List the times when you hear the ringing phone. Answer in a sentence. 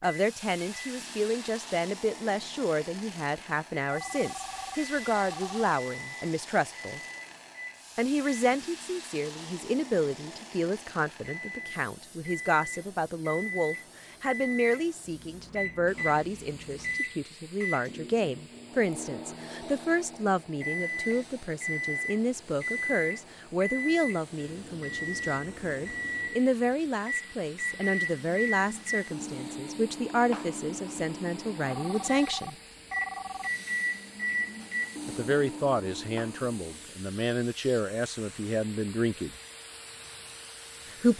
You can hear the ringing phone from 3.9 to 5.7 s and from 31.6 to 33.5 s.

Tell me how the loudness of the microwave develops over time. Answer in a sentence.
The volume of the microwave goes up.